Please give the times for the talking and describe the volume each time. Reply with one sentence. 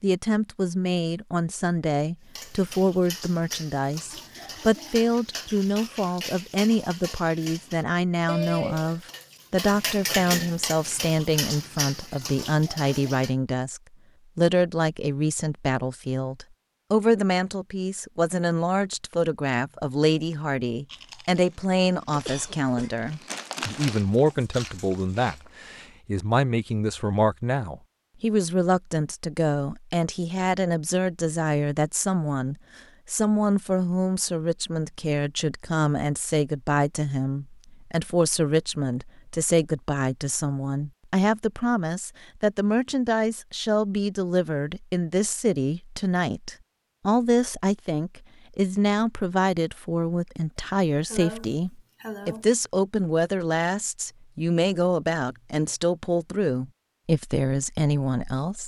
The talking can be heard from 0.0 to 58.6 s, at a steady volume.